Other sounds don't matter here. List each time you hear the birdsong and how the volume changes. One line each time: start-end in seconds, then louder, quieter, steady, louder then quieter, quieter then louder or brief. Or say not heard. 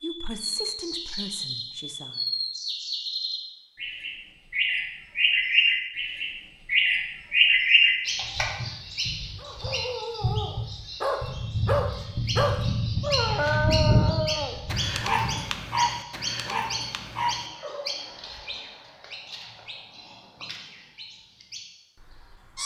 0.0-22.6 louder then quieter.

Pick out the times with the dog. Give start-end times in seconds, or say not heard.
9.3-18.0.